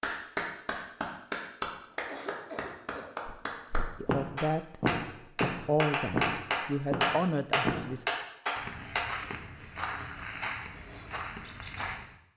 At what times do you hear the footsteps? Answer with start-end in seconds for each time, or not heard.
3.2-12.2.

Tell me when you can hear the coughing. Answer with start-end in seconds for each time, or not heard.
1.9-3.1.